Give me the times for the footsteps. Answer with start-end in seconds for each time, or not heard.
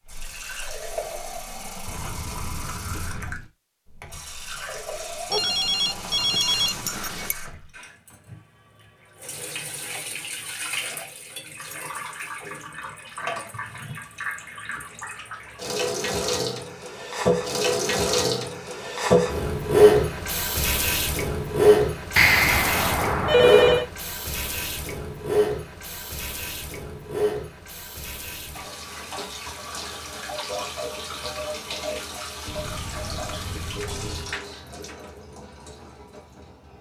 not heard.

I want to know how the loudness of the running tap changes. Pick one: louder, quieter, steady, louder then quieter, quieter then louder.
louder then quieter.